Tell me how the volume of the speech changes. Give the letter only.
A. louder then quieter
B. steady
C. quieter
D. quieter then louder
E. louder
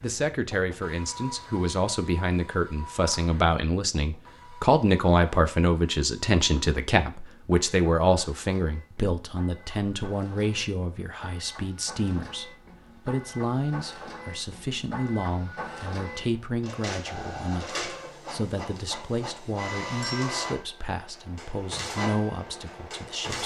C.